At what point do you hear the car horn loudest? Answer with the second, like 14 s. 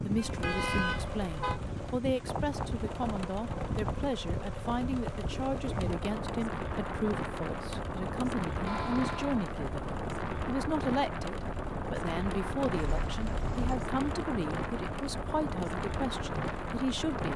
1 s.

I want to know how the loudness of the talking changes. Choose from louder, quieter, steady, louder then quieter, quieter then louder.
steady.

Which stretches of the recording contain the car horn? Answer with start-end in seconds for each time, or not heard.
0.1-1.6, 8.7-9.4, 12.8-13.8.